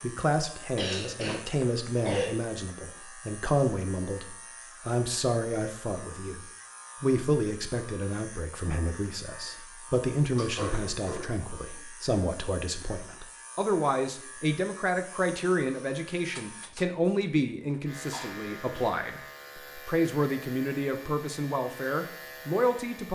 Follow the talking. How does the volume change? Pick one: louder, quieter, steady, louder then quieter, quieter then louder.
steady.